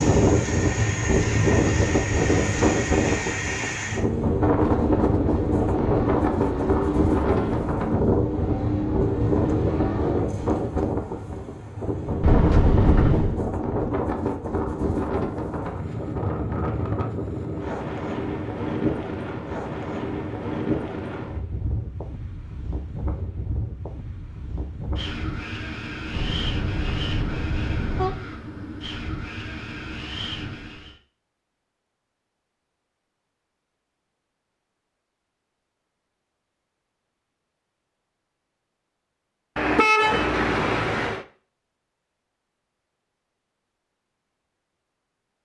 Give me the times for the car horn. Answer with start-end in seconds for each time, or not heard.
12.2-13.4, 26.1-28.2, 39.5-41.2.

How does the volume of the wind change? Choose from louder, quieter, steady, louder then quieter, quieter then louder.
quieter.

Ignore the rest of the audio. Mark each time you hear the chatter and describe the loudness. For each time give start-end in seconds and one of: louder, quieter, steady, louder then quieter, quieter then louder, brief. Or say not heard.
not heard.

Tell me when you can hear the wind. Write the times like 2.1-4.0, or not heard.
0.0-30.9.